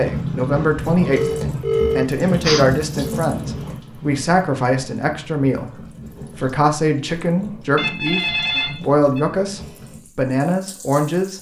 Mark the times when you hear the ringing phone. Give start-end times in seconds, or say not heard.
1.1-3.1, 7.8-9.2.